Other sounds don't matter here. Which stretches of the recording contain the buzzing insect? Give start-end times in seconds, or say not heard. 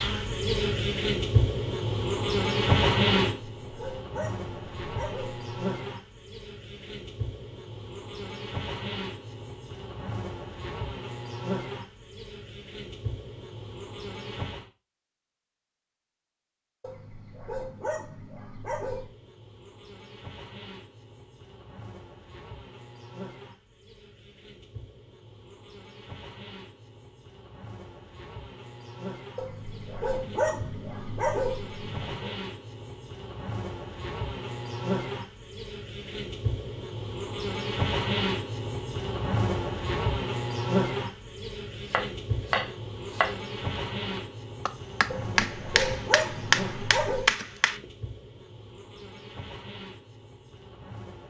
0.0-14.7, 18.9-51.2.